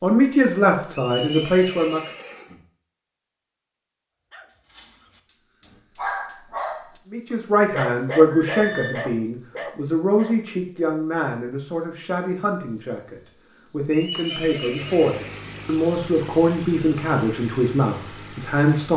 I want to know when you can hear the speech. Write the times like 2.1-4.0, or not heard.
0.0-2.0, 7.1-18.9.